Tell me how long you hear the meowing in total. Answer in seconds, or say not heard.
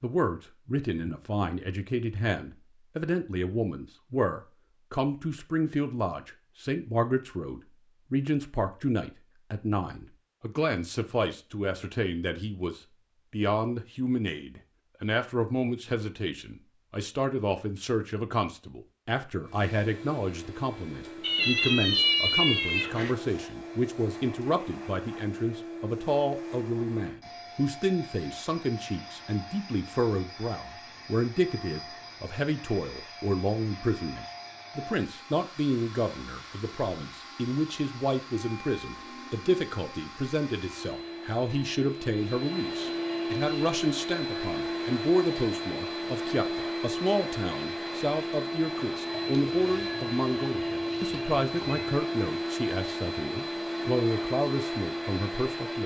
5 s.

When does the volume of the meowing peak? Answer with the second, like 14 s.
22 s.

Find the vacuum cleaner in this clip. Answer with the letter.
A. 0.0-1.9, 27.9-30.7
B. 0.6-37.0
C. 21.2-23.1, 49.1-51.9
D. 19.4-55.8
D.